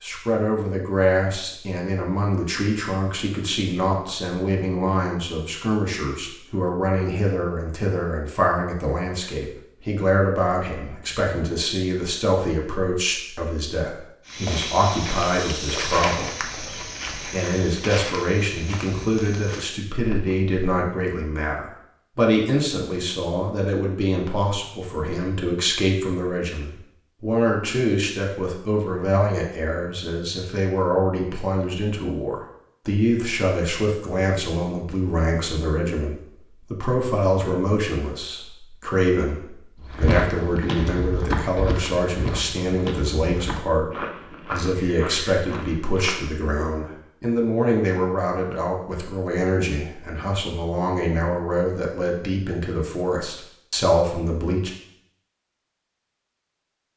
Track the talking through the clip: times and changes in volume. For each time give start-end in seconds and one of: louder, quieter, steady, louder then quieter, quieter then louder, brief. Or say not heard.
0.0-54.7 steady.